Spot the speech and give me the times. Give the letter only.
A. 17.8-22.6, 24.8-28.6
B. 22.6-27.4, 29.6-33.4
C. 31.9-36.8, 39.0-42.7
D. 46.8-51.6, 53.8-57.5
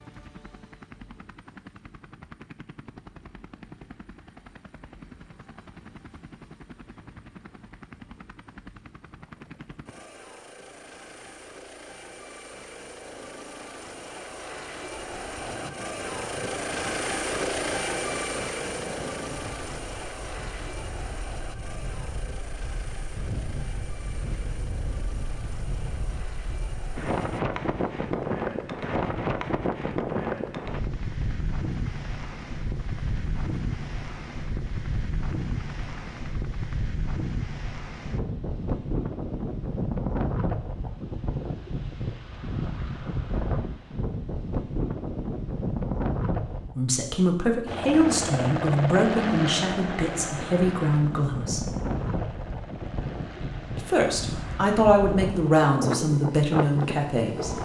D.